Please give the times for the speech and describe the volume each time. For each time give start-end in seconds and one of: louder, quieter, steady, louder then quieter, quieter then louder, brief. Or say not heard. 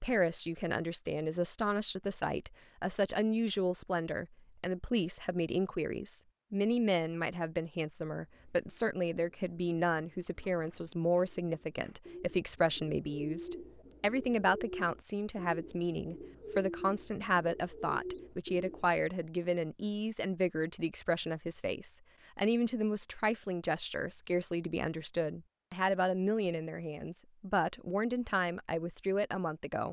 0.0-29.8 steady.